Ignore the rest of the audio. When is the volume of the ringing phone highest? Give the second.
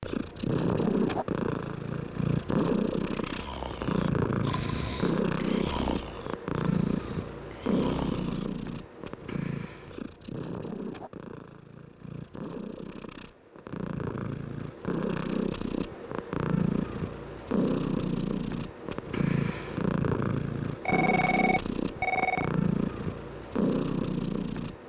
22 s.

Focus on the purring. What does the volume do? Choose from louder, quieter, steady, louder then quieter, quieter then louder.
quieter then louder.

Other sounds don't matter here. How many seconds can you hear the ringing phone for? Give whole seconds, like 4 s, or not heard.
2 s.